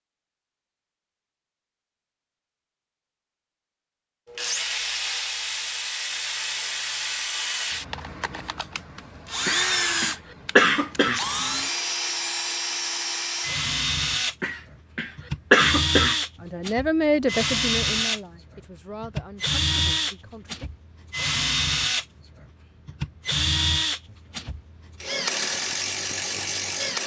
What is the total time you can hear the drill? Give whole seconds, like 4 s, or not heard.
23 s.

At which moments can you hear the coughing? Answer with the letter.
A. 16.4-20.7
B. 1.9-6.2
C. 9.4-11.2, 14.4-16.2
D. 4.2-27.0
C.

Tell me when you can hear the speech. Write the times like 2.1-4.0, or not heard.
16.4-20.7.